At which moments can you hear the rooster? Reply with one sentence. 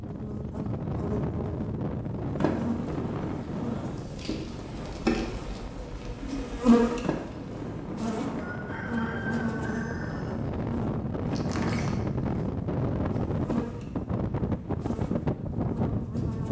The rooster can be heard from 8.3 to 10.3 s.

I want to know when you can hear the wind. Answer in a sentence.
You can hear the wind from 0.0 to 16.4 s.